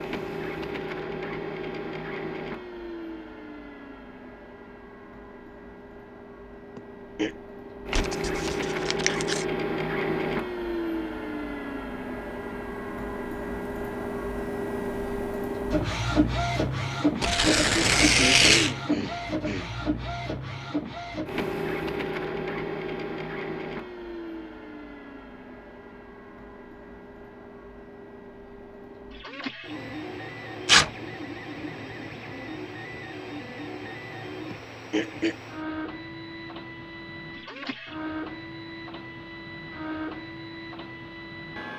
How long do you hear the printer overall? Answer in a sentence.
The printer can be heard for 42 seconds in total.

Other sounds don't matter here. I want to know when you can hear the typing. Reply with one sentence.
The typing can't be heard in this clip.